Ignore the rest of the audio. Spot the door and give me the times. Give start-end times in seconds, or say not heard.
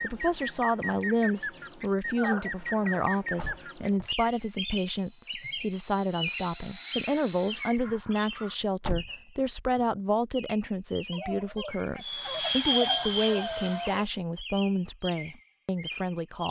3.4-4.5, 8.8-9.5.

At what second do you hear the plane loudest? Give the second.
13 s.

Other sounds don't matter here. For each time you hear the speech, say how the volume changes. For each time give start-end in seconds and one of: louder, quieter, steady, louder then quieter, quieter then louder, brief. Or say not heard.
0.0-16.4 steady.